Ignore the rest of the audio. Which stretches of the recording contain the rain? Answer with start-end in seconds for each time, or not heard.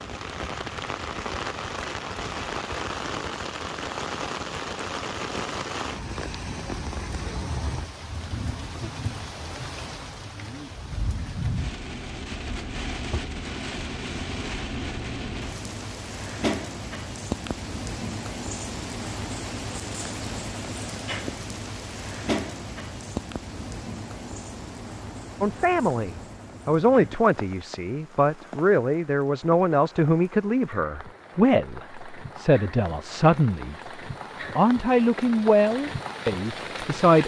0.0-37.2.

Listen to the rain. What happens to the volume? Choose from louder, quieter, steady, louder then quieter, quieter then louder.
quieter.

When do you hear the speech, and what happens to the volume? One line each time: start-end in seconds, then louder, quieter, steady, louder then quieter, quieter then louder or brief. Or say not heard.
25.4-33.8 steady
34.5-37.2 brief.